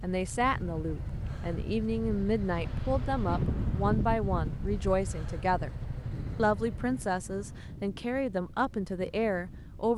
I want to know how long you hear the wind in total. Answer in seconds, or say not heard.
10 s.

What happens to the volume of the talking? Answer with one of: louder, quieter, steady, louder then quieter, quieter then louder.
steady.